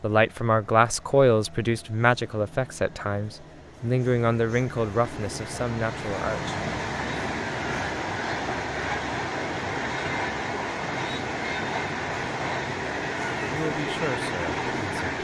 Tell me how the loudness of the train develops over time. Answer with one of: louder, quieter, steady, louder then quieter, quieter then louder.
louder.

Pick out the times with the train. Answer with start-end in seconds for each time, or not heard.
0.0-15.2.